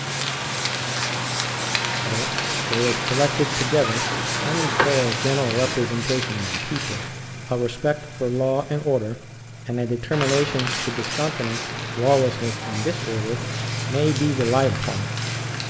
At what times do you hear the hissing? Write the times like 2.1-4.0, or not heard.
0.0-7.1, 10.1-15.6.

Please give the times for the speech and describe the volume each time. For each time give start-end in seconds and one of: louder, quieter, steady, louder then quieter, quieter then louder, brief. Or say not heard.
2.0-15.1 steady.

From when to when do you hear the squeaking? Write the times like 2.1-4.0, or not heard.
3.9-5.0.